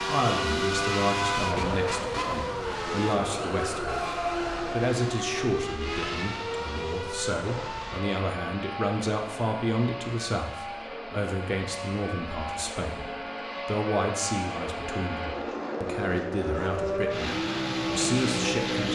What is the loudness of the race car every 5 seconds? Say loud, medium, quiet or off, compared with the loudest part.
loud, medium, medium, loud.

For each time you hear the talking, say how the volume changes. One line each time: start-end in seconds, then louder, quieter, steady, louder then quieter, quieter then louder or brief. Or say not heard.
0.1-18.9 steady.